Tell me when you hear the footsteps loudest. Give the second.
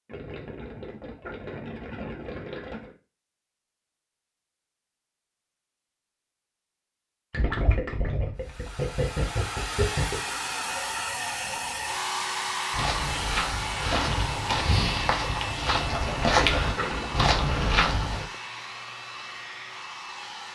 16 s.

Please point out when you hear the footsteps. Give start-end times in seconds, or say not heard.
12.7-18.2.